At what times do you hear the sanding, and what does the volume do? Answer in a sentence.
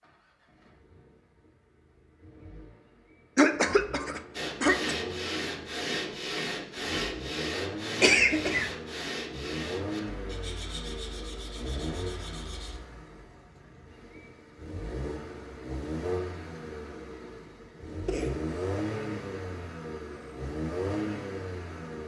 You can hear the sanding from 4.3 to 12.8 s, getting quieter.